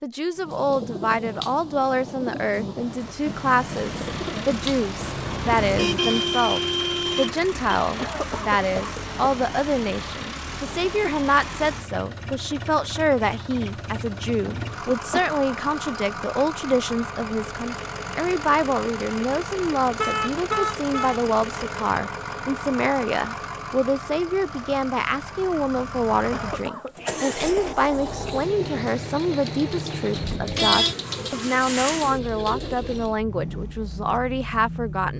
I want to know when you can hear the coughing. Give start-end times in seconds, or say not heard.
8.0-9.3, 14.4-15.2, 26.3-27.6.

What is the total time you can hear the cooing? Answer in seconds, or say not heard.
12 s.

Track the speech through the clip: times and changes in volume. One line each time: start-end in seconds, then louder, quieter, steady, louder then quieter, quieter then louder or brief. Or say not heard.
0.0-35.1 steady.